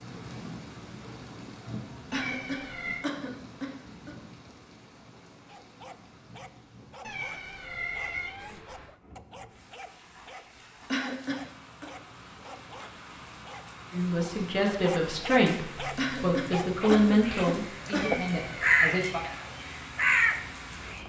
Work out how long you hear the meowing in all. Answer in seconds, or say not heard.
4 s.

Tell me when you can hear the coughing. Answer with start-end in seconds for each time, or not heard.
2.1-4.1, 10.9-11.8, 15.9-18.2.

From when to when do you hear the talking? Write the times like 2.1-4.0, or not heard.
13.9-19.2.